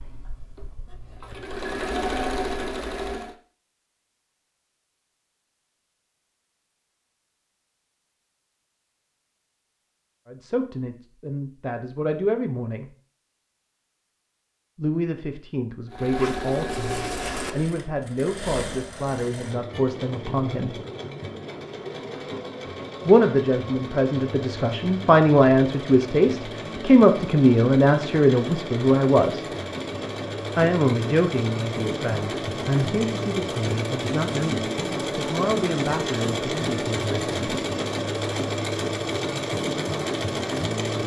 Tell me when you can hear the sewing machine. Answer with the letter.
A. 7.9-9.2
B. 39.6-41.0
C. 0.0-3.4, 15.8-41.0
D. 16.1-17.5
C.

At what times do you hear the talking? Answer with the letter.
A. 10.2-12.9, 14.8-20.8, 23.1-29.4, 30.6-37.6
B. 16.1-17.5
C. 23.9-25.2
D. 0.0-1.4
A.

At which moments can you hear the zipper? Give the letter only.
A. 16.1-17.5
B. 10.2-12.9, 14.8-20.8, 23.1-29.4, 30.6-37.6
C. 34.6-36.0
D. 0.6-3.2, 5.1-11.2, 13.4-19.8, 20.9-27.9
A.